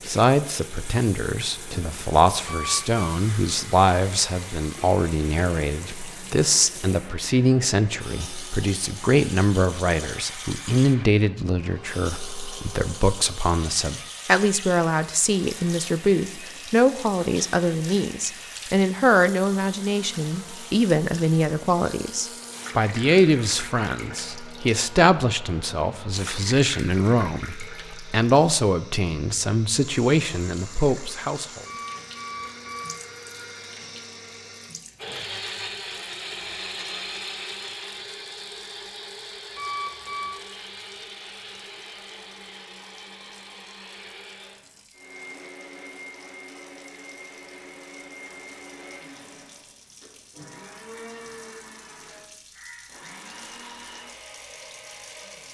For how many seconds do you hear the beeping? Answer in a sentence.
The beeping can be heard for 3 seconds in total.